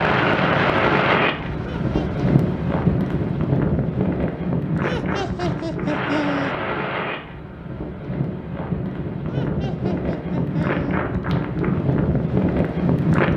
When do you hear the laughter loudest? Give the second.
6 s.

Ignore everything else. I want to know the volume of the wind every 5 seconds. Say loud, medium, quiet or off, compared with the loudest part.
loud, medium, loud.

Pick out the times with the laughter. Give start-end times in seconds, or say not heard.
1.6-2.2, 4.8-6.5, 9.2-11.0.